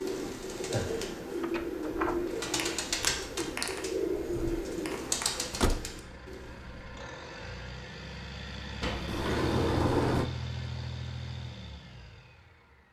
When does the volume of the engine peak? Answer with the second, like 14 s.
10 s.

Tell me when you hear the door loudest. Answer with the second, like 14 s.
10 s.